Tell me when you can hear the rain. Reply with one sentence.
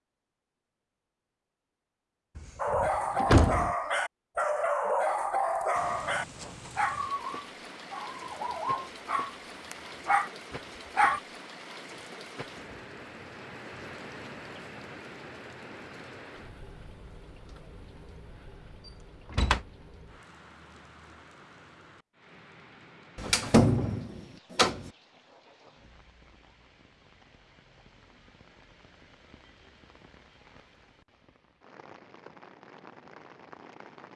You can hear the rain from 5.7 to 34.1 s.